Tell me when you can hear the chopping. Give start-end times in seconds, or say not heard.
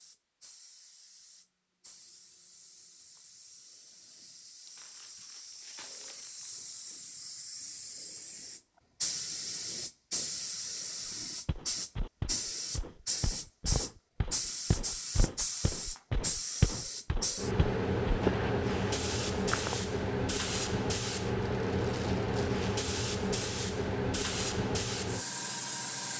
not heard.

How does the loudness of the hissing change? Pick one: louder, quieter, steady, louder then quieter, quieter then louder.
louder.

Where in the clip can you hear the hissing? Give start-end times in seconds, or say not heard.
0.0-26.1.